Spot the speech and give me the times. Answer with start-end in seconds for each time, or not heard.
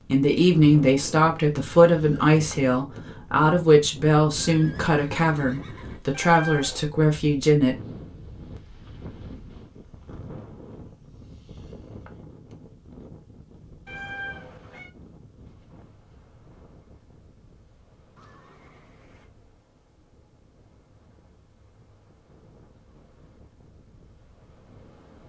0.1-7.8.